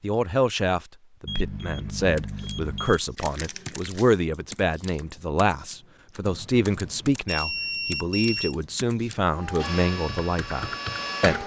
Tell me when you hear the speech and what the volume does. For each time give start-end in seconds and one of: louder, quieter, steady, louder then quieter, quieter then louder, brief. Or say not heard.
0.0-11.4 steady.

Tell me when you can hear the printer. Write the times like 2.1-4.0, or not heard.
9.2-11.4.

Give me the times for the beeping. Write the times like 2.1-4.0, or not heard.
1.2-3.0, 6.2-8.6.